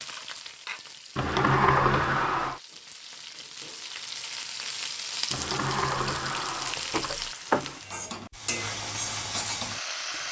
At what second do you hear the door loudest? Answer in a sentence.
The loudest moment of the door is at 2 seconds.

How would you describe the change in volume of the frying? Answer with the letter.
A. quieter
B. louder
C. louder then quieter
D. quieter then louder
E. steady
B.